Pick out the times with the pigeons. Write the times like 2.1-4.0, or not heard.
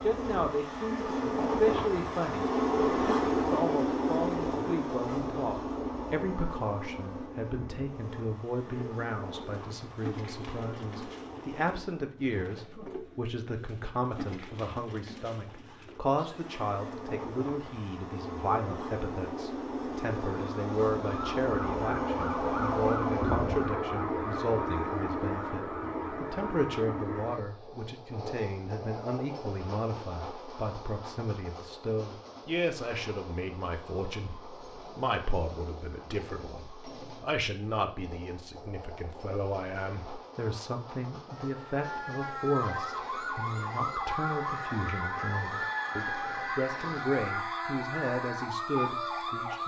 8.6-16.8.